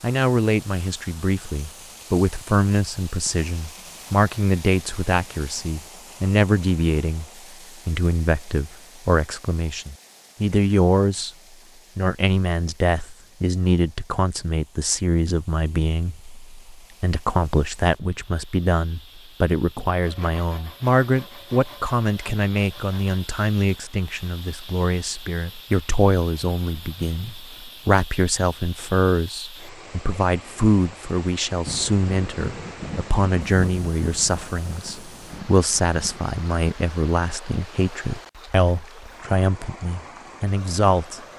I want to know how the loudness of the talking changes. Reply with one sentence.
The volume of the talking stays about the same.